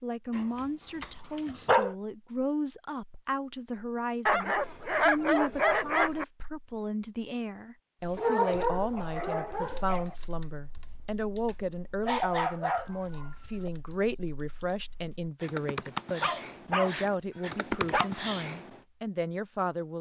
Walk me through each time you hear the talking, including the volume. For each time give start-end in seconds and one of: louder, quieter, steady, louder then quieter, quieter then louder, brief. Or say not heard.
0.0-19.9 steady.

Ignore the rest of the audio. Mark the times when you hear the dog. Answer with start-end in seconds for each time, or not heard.
0.3-1.9, 4.2-6.2, 8.2-10.2, 12.1-13.7, 16.2-18.1.